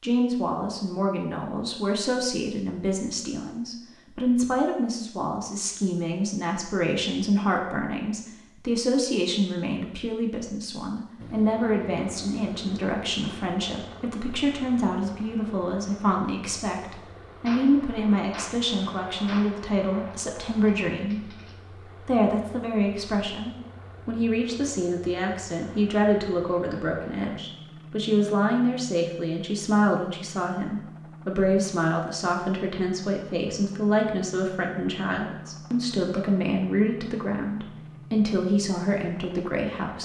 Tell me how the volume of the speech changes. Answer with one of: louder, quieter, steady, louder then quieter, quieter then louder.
steady.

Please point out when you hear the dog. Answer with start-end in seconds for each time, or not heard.
not heard.